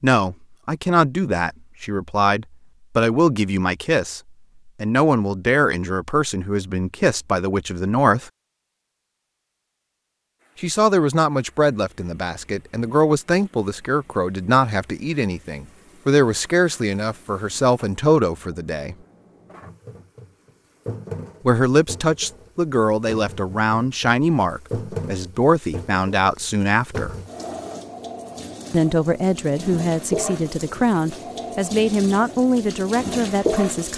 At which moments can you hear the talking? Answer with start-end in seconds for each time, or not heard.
0.0-8.3, 10.6-18.9, 21.4-27.1, 28.7-33.9.